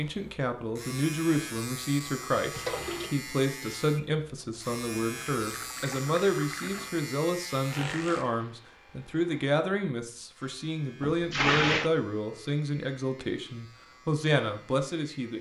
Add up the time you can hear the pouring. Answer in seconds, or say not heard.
3 s.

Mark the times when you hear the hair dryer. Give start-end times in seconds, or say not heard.
not heard.